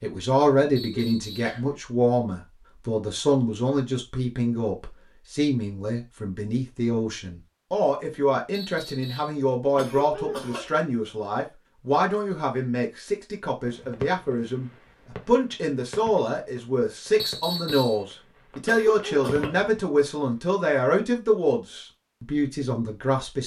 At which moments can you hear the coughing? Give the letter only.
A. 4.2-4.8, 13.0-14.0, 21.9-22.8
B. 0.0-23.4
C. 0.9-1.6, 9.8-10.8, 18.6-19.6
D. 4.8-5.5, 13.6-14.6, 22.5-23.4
C.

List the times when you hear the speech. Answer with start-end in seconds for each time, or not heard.
0.0-23.4.